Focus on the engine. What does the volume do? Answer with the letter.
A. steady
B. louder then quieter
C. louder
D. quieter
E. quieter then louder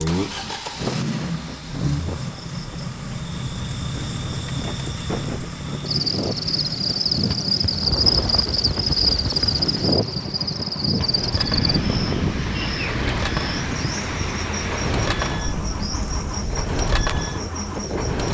E.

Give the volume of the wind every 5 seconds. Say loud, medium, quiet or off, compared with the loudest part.
medium, loud, loud, medium.